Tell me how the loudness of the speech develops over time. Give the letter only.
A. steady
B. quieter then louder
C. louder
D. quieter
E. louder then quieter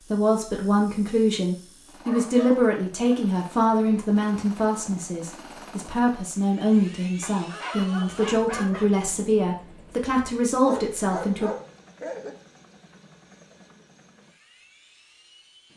A.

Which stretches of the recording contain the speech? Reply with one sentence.
You can hear the speech from 0.1 to 11.5 s.